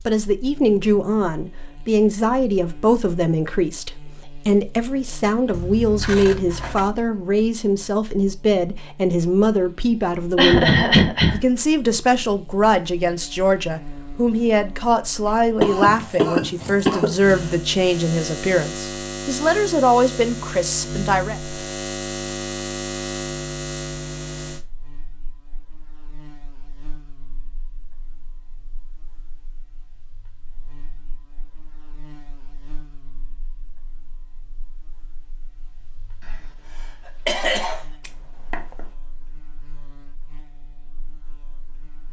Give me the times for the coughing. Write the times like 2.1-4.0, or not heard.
10.3-11.4, 15.6-17.4, 37.2-37.8.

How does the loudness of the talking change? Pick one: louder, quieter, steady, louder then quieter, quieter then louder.
steady.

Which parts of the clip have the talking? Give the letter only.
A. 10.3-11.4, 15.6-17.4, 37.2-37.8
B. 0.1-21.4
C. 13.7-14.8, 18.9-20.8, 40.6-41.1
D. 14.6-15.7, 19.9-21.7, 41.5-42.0
B.